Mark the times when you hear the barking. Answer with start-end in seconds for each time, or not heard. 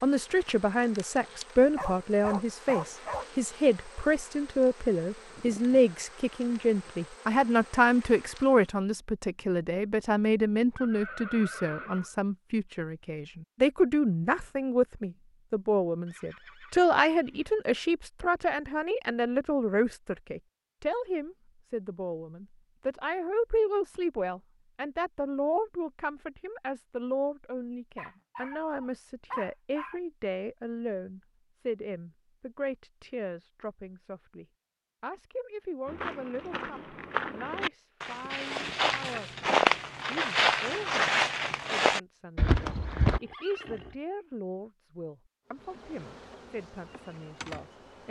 1.8-3.3, 27.9-30.0.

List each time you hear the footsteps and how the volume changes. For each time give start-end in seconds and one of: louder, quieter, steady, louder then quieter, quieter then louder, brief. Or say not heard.
35.9-43.2 louder.